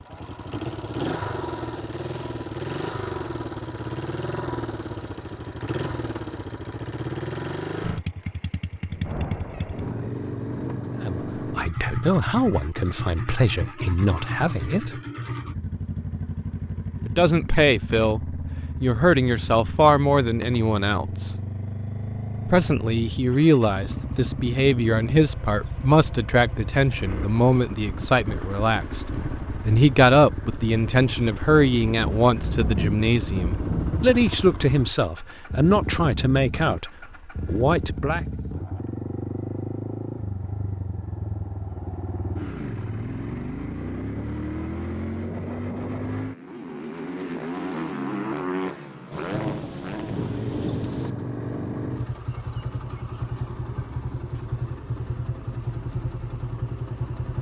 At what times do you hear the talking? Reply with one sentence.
You can hear the talking from 10.9 to 14.9 s, from 17.1 to 21.3 s and from 22.4 to 38.2 s.